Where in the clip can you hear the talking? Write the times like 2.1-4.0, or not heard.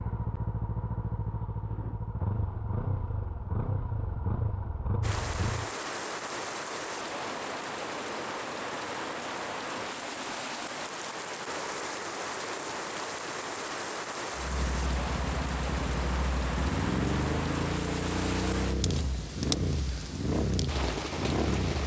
not heard.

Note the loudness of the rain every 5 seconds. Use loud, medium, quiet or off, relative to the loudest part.
off, loud, loud, loud, loud.